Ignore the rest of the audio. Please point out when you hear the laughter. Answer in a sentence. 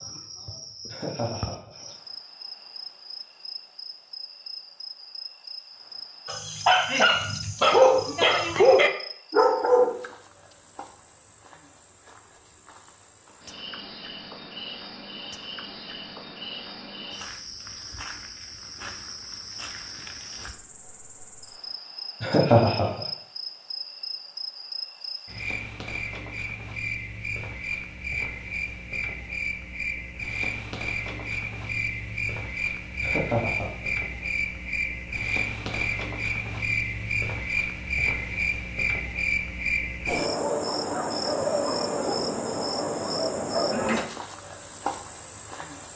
You can hear the laughter from 0.8 to 1.9 s, from 22.2 to 23.0 s and from 33.0 to 33.7 s.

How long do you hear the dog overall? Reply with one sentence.
You can hear the dog for 4 seconds altogether.